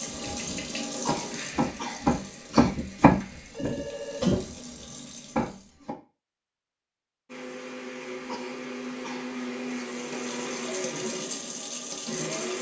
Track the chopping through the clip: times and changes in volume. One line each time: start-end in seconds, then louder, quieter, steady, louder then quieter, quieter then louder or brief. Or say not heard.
0.1-6.0 louder then quieter.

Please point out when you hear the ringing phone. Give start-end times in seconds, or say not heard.
3.2-4.4.